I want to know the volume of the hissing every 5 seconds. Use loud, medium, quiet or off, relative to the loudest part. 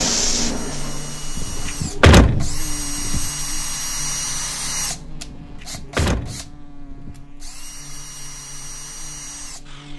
loud, off.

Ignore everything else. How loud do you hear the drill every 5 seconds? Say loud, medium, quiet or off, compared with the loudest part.
loud, medium.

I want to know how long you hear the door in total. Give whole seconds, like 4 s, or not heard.
4 s.